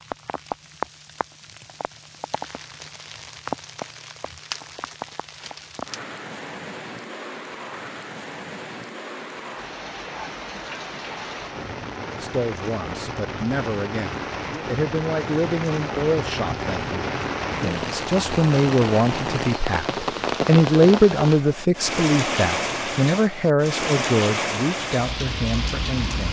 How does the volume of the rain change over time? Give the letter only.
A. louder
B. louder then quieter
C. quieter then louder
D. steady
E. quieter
A.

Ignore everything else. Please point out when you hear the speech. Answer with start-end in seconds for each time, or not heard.
12.2-26.2.